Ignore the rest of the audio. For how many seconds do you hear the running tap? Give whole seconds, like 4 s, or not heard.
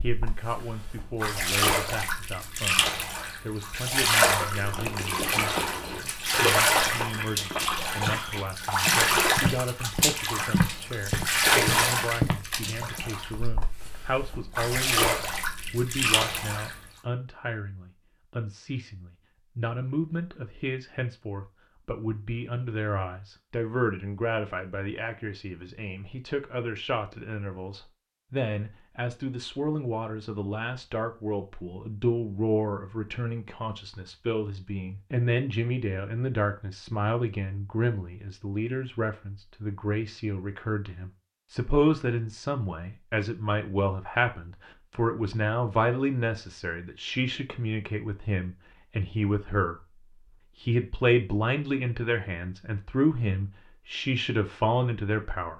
17 s.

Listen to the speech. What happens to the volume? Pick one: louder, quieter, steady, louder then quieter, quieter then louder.
louder.